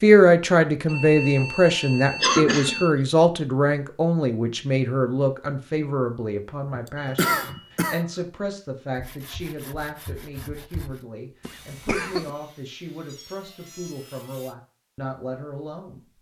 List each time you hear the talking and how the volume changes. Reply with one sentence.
You can hear the talking from 0.0 to 16.1 s, getting quieter.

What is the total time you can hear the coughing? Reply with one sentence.
The coughing can be heard for 2 seconds in total.